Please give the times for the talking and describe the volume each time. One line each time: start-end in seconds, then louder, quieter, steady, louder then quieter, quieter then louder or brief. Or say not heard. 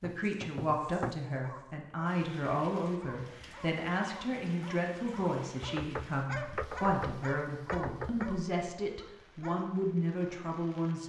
0.0-11.0 steady.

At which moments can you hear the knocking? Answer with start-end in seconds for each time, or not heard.
0.0-1.2, 5.6-8.3.